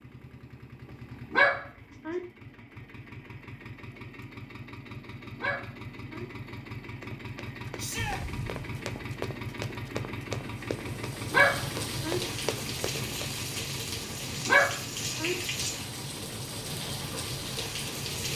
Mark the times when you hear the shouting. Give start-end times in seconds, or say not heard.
7.8-8.2.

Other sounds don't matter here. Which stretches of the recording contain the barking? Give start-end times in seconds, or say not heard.
1.3-2.2, 5.3-6.2, 11.3-12.2, 14.4-15.3.